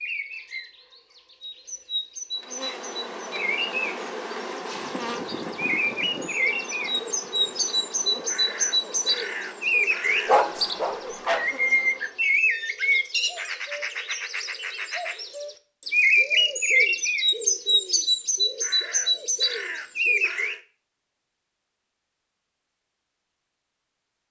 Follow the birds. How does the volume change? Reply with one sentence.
The loudness of the birds goes up.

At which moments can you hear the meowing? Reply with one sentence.
The meowing can't be heard in this clip.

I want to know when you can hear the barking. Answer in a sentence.
The barking can be heard from 10.2 to 11.5 s.